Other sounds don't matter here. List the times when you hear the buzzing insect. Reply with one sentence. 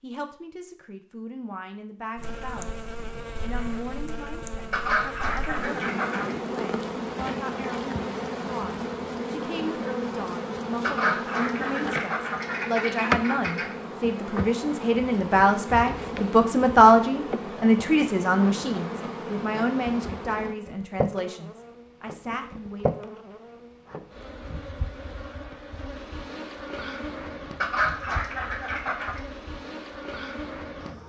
The buzzing insect can be heard from 2.1 to 31.0 s.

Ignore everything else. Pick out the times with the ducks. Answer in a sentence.
You can hear the ducks from 4.7 to 6.3 s, from 10.8 to 13.8 s and from 27.6 to 29.2 s.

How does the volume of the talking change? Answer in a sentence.
The volume of the talking goes up, then down.